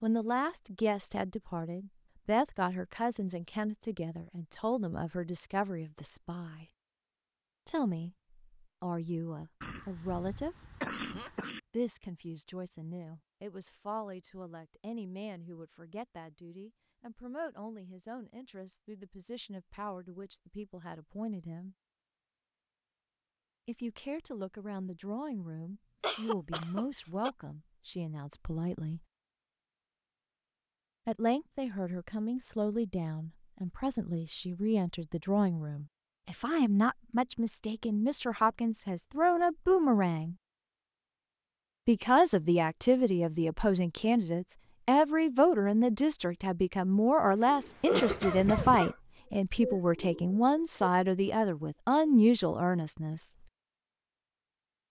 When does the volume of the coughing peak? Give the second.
48 s.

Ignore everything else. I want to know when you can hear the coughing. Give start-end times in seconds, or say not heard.
9.6-11.6, 26.0-27.3, 47.9-49.0.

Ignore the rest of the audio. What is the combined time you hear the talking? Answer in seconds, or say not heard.
46 s.